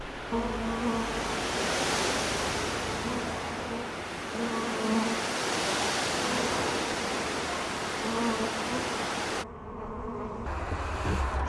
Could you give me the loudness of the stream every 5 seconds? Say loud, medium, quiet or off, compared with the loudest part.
loud, loud, off.